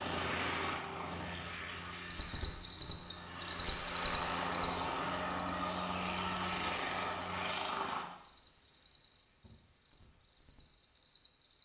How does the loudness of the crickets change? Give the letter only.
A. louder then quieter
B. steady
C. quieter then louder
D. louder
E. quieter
E.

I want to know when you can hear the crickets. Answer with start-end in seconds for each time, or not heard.
2.0-11.6.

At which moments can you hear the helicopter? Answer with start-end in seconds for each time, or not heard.
0.0-8.1.